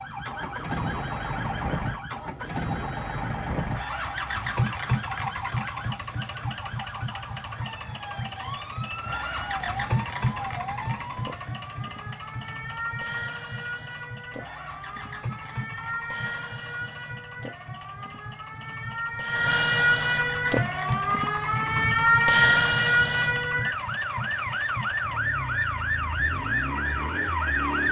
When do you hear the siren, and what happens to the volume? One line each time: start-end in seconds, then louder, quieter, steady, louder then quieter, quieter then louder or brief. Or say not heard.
0.0-27.8 louder.